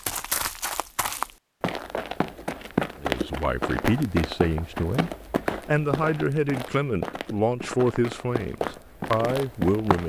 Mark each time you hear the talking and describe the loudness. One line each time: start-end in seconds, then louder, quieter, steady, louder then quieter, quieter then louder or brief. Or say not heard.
3.0-10.0 steady.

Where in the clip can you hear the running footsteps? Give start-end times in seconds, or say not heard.
0.0-10.0.